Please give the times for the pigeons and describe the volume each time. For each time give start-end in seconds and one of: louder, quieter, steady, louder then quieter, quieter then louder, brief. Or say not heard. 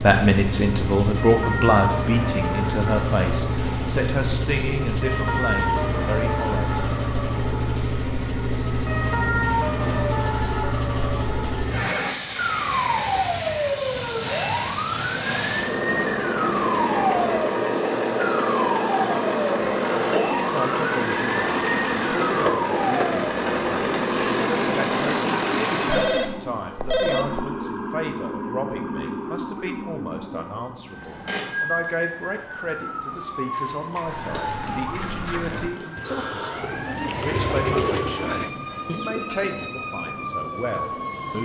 34.0-39.5 louder then quieter.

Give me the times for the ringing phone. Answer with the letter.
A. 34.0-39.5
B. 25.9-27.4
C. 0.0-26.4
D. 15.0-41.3
B.